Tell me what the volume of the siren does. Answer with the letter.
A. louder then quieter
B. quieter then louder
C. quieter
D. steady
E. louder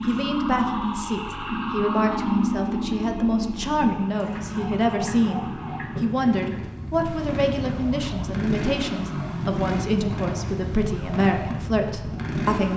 C.